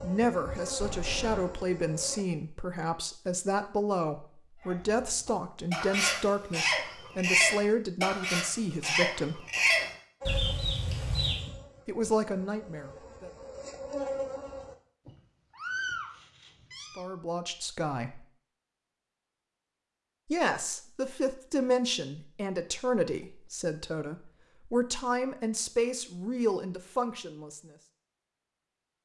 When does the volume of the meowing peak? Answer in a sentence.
The loudest moment of the meowing is at 16 seconds.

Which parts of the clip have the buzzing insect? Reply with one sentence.
You can hear the buzzing insect from 0.0 to 2.2 s and from 10.2 to 14.8 s.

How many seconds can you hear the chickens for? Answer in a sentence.
You can hear the chickens for 7 seconds altogether.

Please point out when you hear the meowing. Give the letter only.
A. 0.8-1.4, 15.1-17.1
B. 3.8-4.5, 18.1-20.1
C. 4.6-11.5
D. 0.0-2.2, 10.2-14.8
A.